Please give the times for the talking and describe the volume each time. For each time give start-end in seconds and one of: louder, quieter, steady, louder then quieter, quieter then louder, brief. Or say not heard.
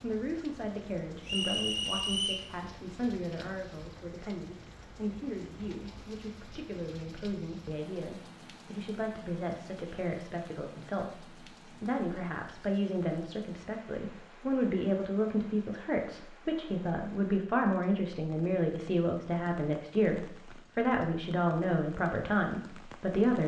0.0-23.4 louder.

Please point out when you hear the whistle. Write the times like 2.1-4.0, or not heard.
1.2-2.5.